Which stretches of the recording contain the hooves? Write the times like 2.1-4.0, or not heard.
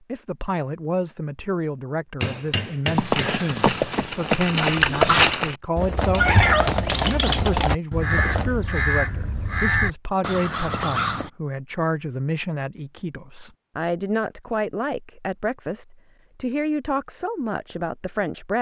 2.9-8.5.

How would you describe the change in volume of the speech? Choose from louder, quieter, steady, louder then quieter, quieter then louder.
steady.